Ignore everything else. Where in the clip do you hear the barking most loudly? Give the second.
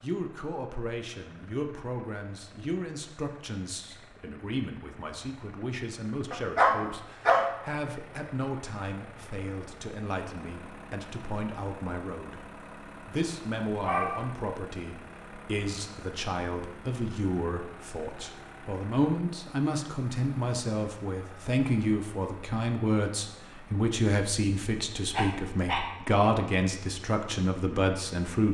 7 s.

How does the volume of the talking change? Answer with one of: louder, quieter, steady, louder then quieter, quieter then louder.
louder.